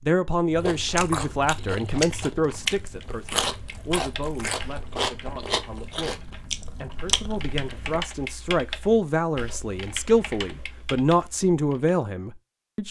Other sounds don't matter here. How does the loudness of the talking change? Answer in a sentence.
The loudness of the talking goes down, then up.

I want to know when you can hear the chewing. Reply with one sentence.
The chewing can be heard from 0.5 to 8.1 s.